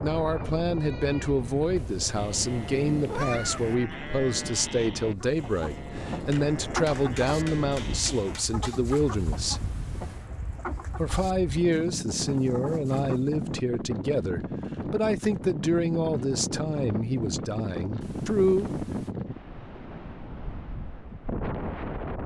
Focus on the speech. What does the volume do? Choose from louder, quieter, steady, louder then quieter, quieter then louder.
steady.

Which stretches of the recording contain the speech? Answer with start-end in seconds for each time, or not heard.
0.0-9.7, 10.9-18.7.